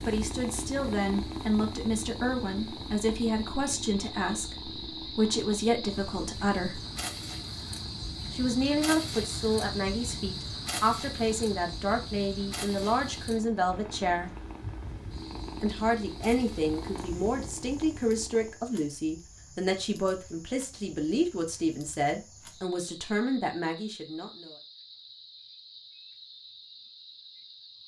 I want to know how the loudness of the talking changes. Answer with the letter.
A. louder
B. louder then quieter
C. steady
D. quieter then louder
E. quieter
C.